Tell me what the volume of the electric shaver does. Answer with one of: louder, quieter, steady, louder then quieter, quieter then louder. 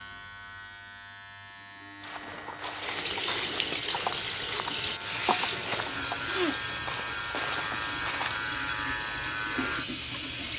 louder.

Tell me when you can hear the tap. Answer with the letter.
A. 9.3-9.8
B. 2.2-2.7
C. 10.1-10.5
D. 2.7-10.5
D.